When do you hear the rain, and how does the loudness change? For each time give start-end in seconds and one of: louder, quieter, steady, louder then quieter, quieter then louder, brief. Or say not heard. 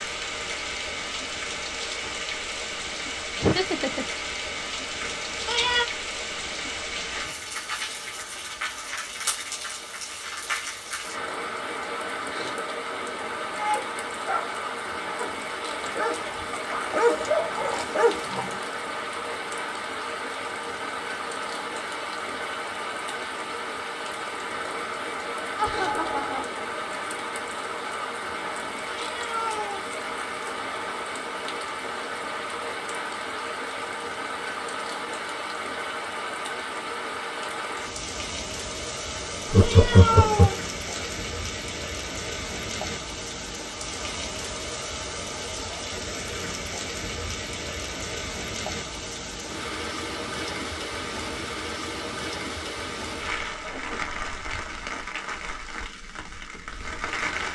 0.0-57.5 steady.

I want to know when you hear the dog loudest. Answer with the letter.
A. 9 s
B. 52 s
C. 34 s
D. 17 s
D.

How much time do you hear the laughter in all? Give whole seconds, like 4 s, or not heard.
3 s.